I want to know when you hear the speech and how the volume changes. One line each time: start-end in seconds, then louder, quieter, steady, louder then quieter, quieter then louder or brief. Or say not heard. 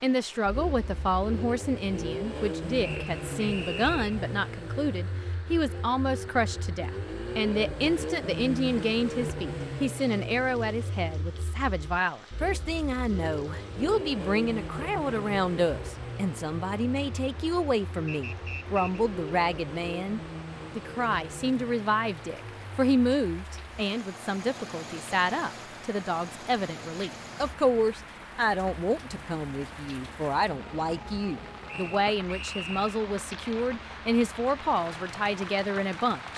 0.0-36.3 steady.